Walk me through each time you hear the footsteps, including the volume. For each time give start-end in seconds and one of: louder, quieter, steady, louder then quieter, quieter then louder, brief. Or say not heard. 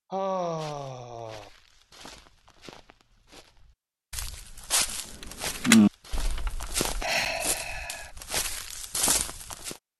0.5-9.8 louder.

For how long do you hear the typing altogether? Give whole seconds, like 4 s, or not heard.
2 s.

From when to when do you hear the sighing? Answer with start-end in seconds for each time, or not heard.
0.1-1.5, 7.0-8.1.